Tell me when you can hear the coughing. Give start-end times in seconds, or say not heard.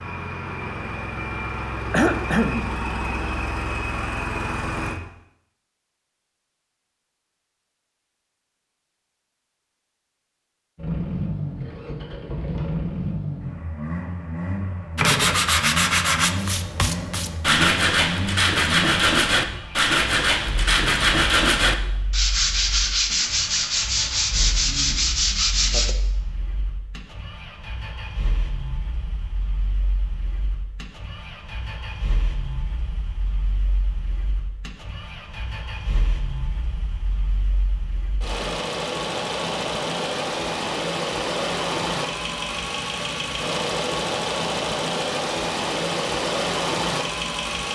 1.9-2.7.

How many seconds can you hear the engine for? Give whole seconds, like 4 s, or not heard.
42 s.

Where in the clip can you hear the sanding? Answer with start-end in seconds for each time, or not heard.
14.9-25.9.